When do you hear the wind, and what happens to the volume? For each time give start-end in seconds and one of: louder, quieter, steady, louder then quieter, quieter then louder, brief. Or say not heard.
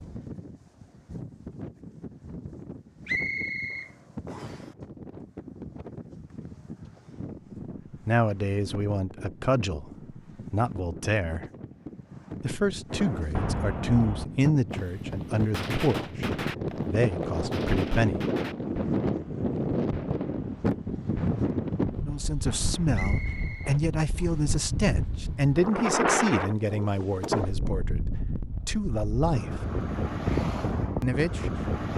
0.0-31.9 louder.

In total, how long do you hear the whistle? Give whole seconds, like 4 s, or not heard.
3 s.